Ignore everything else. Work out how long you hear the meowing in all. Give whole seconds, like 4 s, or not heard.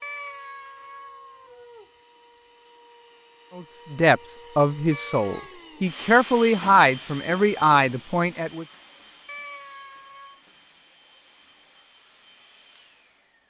4 s.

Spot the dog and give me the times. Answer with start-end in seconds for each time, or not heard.
not heard.